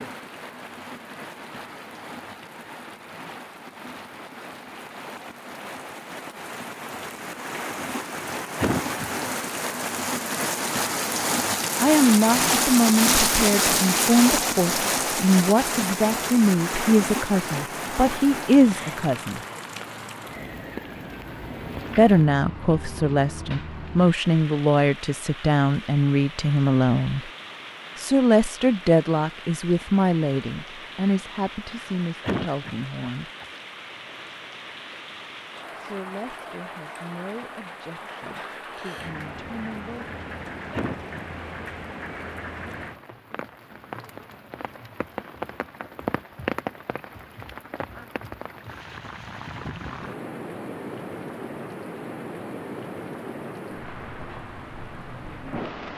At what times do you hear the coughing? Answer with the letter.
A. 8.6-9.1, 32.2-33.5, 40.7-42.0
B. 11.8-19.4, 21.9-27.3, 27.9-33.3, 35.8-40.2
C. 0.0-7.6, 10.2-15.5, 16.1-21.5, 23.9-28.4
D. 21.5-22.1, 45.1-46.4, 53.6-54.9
A.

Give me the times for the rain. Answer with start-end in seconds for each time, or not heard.
0.0-55.9.